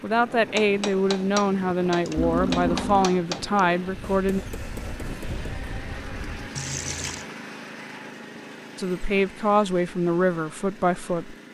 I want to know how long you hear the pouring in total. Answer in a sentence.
The pouring can be heard for 2 seconds in total.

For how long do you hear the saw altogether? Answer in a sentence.
You can't hear the saw here.